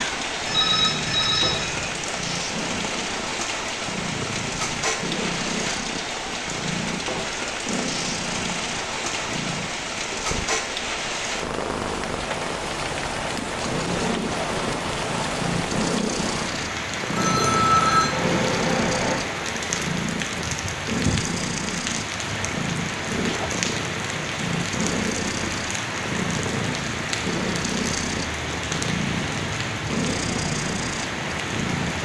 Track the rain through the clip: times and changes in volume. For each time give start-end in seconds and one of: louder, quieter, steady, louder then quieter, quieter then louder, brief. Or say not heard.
0.0-32.0 steady.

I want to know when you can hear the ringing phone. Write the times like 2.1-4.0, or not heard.
0.5-1.9, 17.1-19.1.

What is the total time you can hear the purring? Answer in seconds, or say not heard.
32 s.